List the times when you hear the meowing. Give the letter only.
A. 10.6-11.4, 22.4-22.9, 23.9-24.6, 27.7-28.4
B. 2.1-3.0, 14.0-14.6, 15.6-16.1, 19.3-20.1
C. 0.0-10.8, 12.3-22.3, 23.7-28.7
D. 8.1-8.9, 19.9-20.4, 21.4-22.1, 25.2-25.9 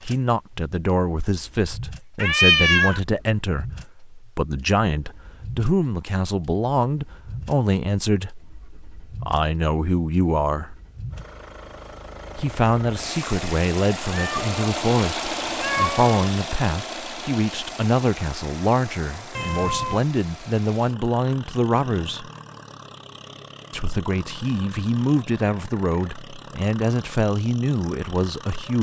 B.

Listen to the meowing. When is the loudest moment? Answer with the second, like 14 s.
3 s.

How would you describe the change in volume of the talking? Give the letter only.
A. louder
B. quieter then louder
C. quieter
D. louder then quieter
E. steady
E.